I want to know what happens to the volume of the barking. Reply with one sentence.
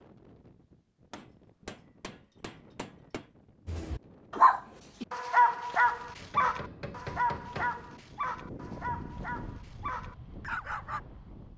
The loudness of the barking goes down.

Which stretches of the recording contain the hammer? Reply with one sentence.
The hammer can be heard from 1.1 to 3.3 s and from 6.2 to 7.8 s.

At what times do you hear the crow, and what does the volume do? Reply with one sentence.
The crow can't be heard in this clip.